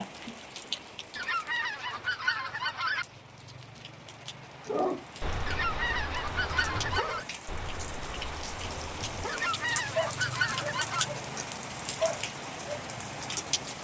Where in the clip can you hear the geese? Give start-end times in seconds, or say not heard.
1.1-3.0, 5.5-7.2, 9.2-11.1.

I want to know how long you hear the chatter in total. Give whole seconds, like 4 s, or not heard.
not heard.